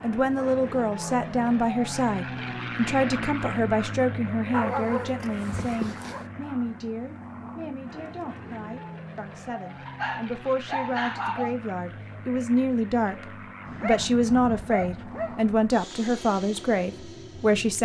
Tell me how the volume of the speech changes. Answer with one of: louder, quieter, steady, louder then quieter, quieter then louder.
quieter then louder.